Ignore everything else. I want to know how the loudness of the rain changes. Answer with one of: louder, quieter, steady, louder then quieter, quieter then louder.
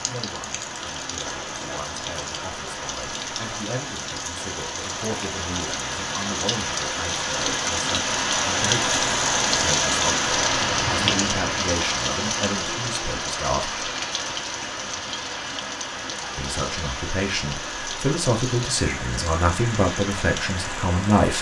louder then quieter.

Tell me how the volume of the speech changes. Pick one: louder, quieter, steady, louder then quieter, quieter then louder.
louder.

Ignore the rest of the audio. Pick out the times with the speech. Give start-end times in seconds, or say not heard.
0.1-13.8, 16.4-21.3.